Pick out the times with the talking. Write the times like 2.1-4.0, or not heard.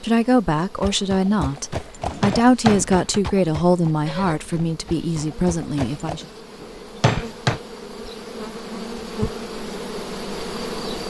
0.0-6.2.